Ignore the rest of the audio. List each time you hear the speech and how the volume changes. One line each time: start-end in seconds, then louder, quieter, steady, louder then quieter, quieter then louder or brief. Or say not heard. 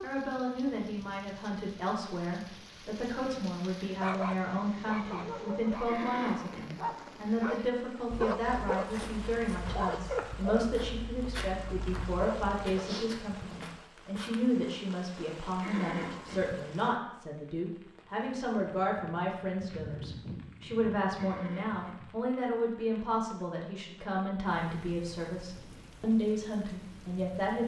0.0-27.6 steady.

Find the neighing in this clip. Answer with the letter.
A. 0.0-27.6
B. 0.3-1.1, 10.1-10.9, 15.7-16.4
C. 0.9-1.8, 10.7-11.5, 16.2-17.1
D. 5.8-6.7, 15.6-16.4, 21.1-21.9
D.